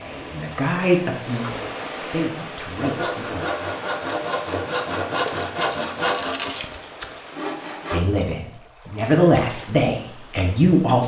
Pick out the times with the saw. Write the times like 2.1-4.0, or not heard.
2.8-8.1.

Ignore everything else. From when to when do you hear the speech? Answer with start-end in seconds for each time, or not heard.
0.0-3.5, 7.9-11.0.